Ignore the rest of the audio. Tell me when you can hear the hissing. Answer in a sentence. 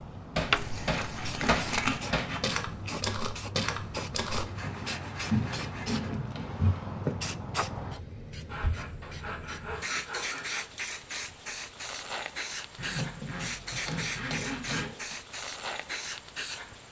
You can hear the hissing from 0.0 to 16.8 s.